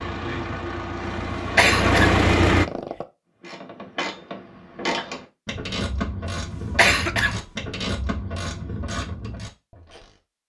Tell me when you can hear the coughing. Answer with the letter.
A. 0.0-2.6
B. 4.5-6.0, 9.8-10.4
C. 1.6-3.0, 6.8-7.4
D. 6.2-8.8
C.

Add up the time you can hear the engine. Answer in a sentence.
You can hear the engine for 3 seconds altogether.